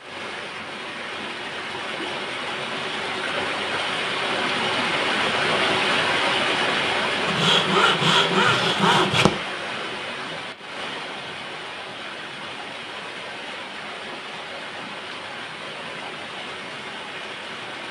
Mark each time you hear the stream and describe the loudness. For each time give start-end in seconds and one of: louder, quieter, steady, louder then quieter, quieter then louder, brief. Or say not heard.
0.0-17.8 louder then quieter.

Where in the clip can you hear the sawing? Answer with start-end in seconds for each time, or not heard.
7.2-9.3.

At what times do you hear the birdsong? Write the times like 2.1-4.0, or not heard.
not heard.